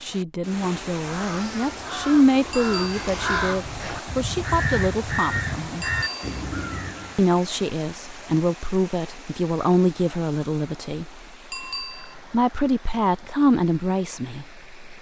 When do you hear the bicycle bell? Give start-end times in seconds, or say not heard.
2.5-3.0, 5.8-6.5, 11.5-12.2.